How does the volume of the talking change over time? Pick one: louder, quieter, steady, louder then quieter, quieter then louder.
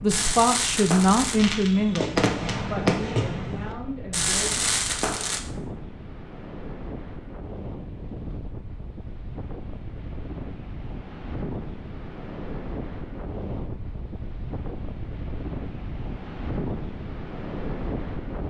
quieter.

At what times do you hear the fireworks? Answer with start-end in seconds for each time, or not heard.
0.1-5.4.